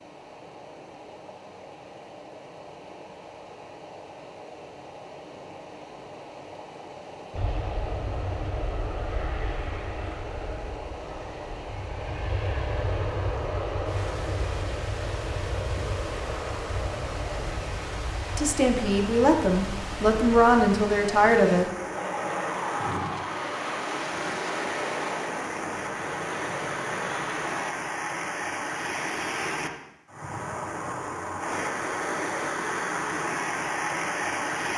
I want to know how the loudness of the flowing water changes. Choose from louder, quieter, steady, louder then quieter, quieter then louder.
louder.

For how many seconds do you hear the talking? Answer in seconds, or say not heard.
3 s.